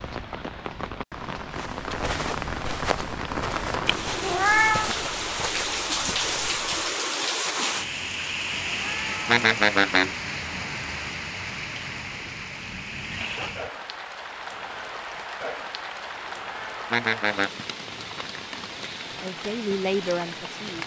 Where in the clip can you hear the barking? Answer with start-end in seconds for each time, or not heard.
not heard.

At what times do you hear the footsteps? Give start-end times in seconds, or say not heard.
1.5-7.0.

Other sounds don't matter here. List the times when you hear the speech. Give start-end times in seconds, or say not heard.
19.2-20.8.